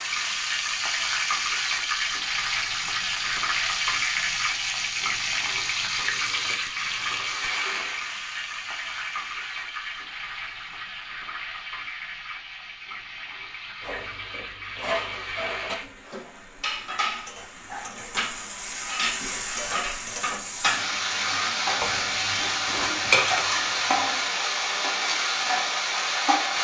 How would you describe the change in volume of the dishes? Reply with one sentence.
The loudness of the dishes goes up.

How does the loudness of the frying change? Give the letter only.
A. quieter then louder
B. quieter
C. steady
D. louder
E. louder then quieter
A.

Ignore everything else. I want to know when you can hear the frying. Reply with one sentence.
The frying can be heard from 0.0 to 26.5 s.